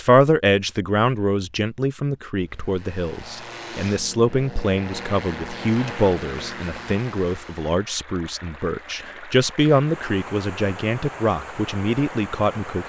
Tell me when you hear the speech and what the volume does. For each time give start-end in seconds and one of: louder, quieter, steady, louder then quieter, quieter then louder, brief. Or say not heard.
0.0-12.8 steady.